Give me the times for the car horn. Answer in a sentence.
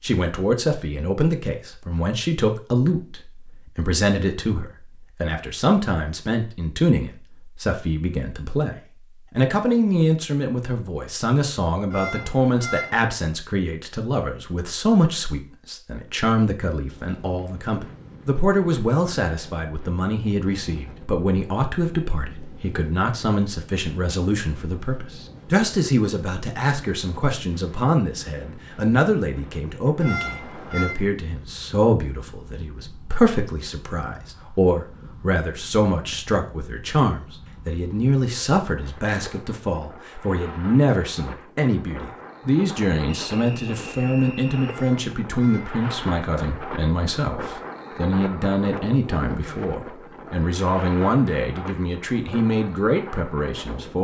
You can hear the car horn from 11.9 to 12.9 s, from 30.0 to 30.9 s and from 44.6 to 45.8 s.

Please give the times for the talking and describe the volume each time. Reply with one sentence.
The talking can be heard from 0.0 to 53.9 s, at a steady volume.